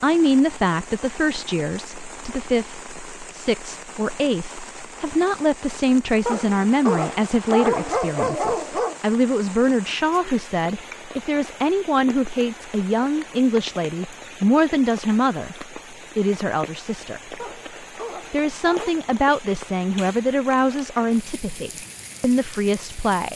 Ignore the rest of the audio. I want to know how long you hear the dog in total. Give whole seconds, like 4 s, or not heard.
4 s.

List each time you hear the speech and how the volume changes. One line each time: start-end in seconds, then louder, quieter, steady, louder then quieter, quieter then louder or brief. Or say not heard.
0.0-17.4 steady
18.3-23.3 quieter then louder.